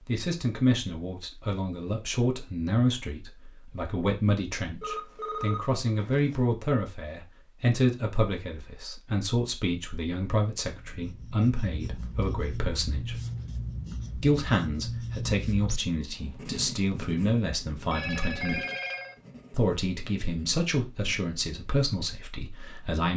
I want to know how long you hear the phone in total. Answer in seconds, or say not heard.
3 s.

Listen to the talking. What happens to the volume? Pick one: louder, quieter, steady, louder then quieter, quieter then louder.
steady.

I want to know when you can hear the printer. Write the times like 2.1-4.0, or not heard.
not heard.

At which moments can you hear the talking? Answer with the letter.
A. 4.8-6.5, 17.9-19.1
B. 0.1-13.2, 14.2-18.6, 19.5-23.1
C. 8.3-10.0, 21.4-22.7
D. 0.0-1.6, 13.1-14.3
B.